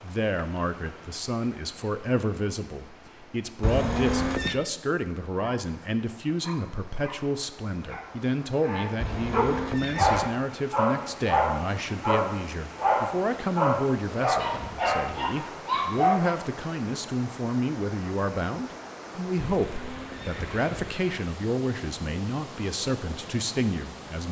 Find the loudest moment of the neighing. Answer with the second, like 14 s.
4 s.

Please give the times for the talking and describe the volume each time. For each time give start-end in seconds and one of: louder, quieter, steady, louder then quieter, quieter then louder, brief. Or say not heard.
0.0-24.2 steady.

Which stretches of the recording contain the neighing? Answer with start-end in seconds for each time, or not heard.
3.6-4.5, 9.0-10.3, 19.6-20.9.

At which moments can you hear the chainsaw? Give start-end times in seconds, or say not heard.
not heard.